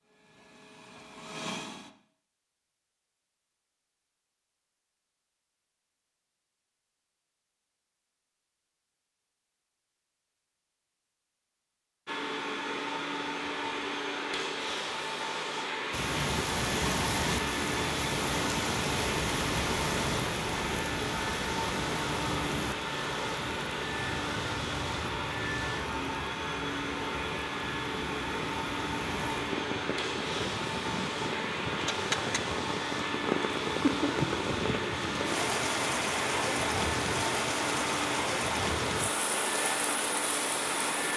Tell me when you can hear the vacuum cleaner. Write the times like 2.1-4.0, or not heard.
0.0-1.9, 12.1-41.1.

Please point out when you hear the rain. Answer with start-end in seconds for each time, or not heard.
15.9-41.1.